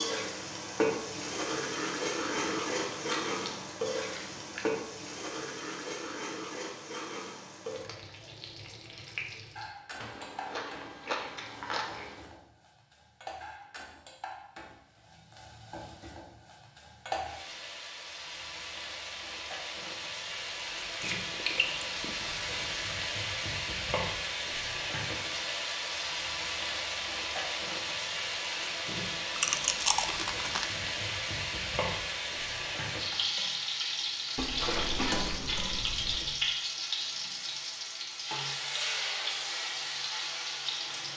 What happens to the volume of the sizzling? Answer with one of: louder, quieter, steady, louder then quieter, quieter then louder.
quieter then louder.